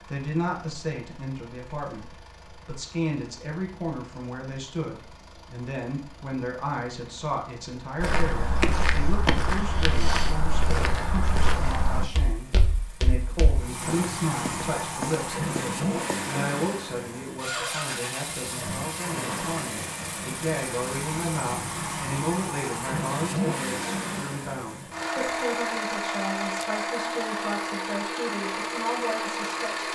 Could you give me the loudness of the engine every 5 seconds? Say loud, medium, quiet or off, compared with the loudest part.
quiet, quiet, medium, loud, loud, loud.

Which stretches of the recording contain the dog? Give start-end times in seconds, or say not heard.
not heard.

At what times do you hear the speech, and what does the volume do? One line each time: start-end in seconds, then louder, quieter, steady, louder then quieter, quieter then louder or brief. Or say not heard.
0.0-29.8 steady.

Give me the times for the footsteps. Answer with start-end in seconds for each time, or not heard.
8.0-16.3.